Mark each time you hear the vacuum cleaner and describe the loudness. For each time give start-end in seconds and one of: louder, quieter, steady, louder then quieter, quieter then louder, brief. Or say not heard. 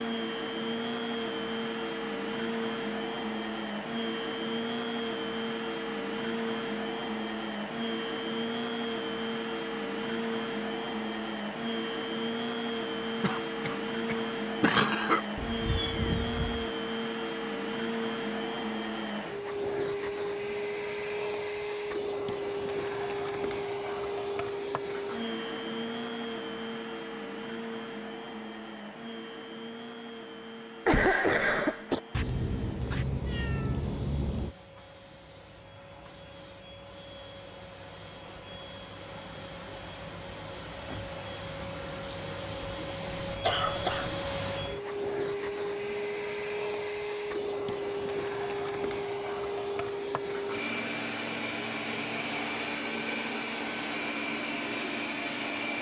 0.0-55.7 quieter then louder.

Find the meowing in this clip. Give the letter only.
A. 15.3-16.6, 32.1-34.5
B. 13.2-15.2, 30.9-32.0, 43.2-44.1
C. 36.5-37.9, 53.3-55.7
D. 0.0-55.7
A.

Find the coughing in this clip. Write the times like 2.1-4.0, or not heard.
13.2-15.2, 30.9-32.0, 43.2-44.1.